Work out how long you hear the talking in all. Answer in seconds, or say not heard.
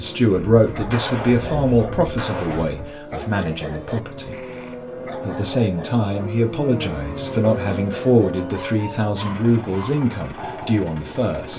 11 s.